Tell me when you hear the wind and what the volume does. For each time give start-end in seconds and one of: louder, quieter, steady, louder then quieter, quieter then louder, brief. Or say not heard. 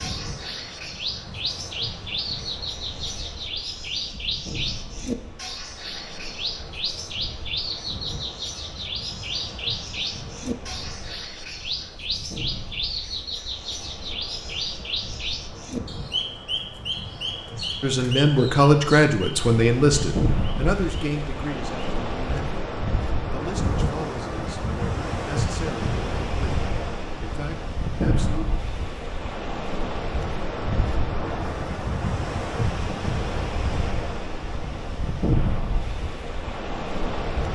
0.0-37.5 louder.